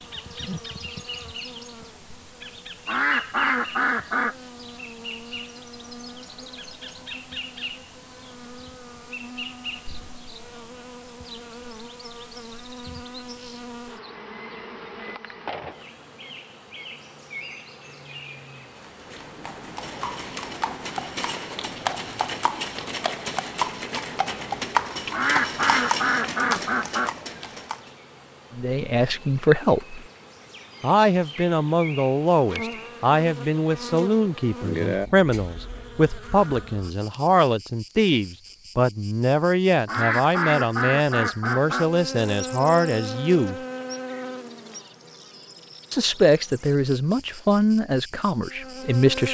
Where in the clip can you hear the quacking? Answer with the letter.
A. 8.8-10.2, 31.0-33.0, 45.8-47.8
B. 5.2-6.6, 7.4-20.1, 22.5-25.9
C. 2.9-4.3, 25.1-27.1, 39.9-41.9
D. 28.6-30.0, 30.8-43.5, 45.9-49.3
C.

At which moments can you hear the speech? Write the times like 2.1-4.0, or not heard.
28.6-30.0, 30.8-43.5, 45.9-49.3.